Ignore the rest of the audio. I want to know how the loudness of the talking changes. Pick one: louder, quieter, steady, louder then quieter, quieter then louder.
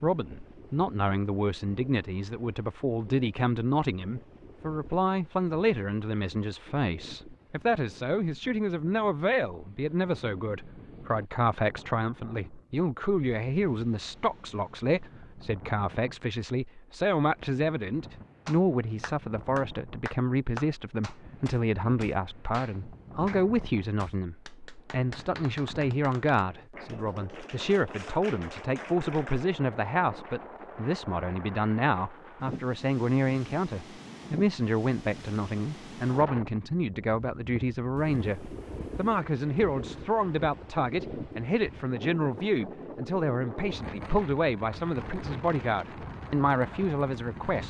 steady.